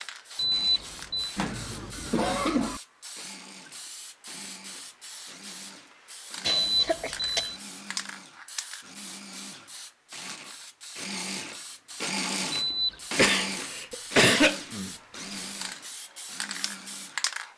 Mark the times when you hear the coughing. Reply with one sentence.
You can hear the coughing from 1.4 to 2.8 s, from 6.5 to 7.5 s and from 13.2 to 14.9 s.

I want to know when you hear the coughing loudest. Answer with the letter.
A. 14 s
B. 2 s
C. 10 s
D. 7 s
A.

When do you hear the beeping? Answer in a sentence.
You can hear the beeping from 0.3 to 1.4 s, from 6.5 to 7.6 s and from 12.5 to 13.0 s.